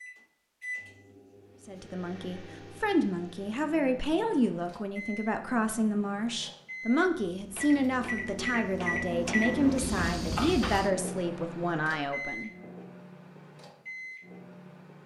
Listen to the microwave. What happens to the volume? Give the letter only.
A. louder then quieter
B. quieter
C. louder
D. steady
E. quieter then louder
A.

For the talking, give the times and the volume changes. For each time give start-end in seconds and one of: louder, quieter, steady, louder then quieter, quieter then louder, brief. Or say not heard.
1.6-12.5 steady.